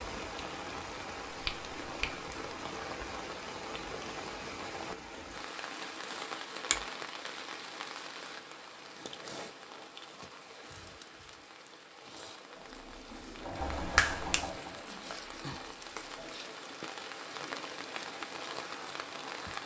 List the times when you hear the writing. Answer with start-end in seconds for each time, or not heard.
not heard.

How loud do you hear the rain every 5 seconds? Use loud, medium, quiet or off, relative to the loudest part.
loud, loud, medium, loud.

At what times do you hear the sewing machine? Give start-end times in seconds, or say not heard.
12.6-16.4.